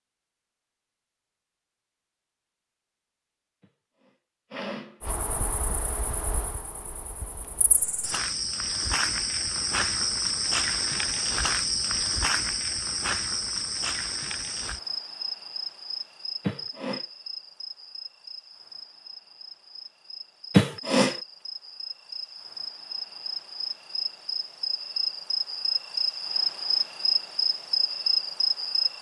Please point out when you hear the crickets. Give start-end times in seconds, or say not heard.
5.0-28.9.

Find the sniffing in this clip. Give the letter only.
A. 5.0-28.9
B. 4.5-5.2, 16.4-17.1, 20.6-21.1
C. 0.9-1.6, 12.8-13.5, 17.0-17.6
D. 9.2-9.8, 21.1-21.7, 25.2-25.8
B.